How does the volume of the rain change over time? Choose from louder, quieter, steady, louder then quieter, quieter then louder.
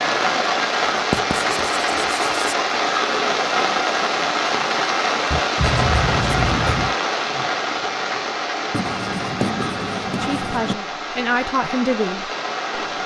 quieter.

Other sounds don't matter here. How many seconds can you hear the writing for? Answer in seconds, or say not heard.
5 s.